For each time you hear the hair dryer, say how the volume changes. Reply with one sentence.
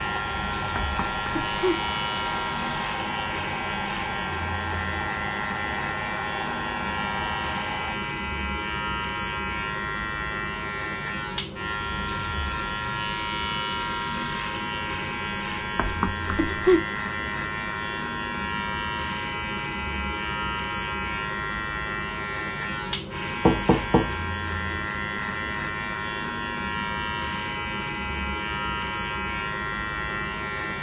The hair dryer can be heard from 0.0 to 8.0 s, at a steady volume.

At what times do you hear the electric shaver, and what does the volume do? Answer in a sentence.
The electric shaver can be heard from 0.0 to 30.7 s, at a steady volume.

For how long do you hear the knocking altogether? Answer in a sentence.
You can hear the knocking for 3 seconds altogether.